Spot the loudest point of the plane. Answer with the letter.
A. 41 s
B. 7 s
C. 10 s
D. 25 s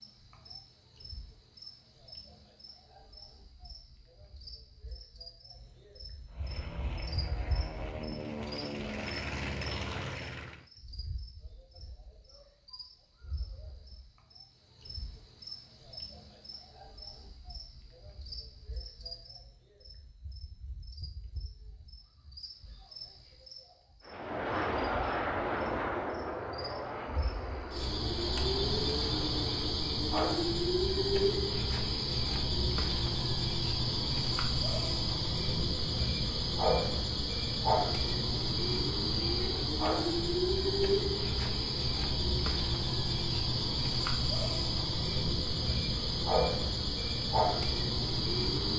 D.